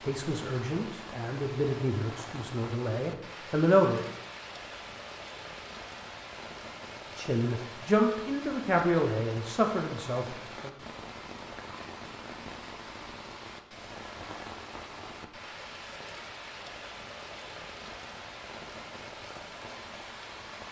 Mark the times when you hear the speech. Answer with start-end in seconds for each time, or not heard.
0.1-4.0, 7.2-10.7.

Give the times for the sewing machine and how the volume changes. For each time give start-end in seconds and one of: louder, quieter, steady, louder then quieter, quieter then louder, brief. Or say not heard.
not heard.